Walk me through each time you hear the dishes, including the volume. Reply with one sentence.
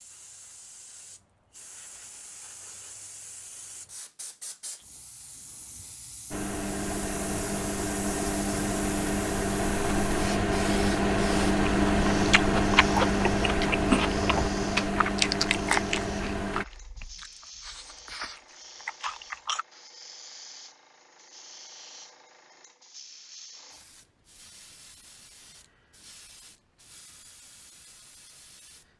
The dishes can't be heard in this clip.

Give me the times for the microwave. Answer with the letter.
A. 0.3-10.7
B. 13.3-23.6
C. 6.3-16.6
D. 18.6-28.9
C.